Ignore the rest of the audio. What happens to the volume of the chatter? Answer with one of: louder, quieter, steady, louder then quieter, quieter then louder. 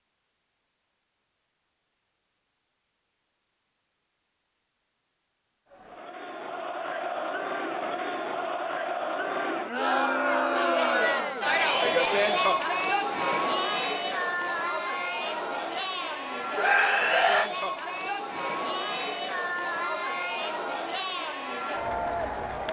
louder then quieter.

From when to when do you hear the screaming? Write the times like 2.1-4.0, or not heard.
16.6-17.5.